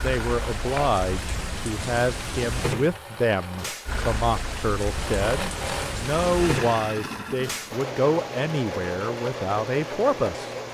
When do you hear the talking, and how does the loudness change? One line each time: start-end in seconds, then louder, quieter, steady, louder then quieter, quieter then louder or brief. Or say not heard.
0.0-10.7 steady.